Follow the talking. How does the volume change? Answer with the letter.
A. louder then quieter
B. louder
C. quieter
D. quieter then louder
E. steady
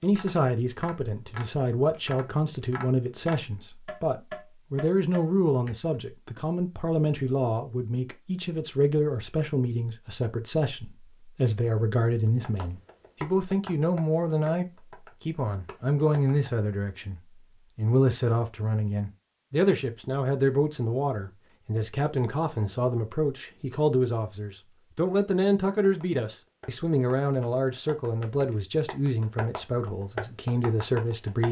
E.